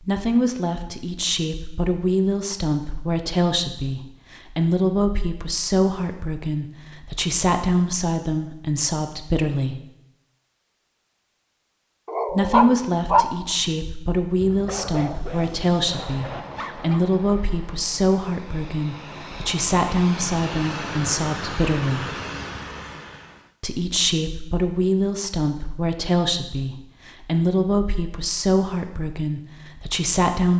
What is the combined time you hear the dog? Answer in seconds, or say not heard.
5 s.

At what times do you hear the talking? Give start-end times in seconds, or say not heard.
0.0-9.8, 12.3-22.1, 23.6-30.5.